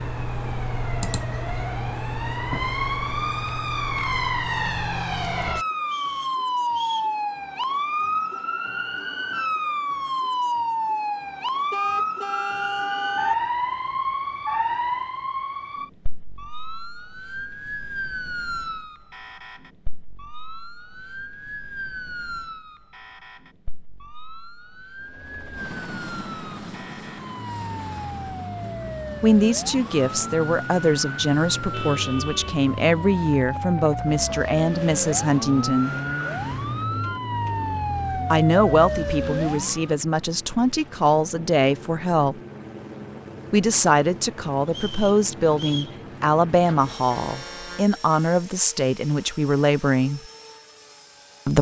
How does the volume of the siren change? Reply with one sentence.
The volume of the siren goes down, then up.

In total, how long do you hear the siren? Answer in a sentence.
You can hear the siren for 40 seconds altogether.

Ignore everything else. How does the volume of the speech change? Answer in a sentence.
The loudness of the speech stays about the same.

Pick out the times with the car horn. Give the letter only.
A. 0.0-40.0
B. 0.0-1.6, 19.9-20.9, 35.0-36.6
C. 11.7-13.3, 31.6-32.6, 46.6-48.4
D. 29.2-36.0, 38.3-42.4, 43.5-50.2
C.